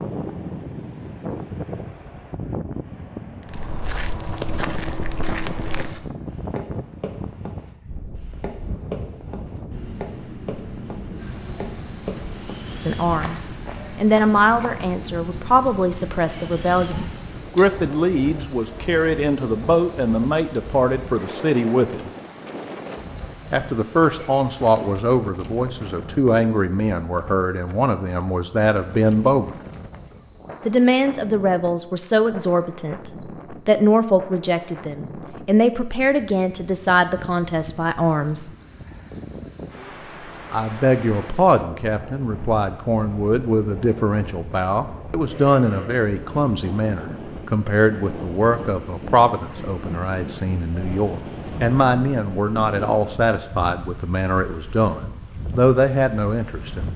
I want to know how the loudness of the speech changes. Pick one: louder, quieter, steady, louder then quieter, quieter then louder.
steady.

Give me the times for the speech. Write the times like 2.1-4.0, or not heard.
12.8-22.1, 23.5-29.6, 30.6-38.5, 40.5-56.9.